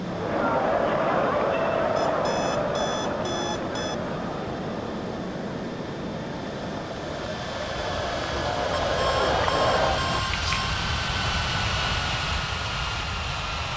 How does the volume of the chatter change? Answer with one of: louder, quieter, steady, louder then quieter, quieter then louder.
quieter then louder.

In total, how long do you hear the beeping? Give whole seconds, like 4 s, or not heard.
4 s.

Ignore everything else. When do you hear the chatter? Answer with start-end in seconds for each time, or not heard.
0.0-10.2.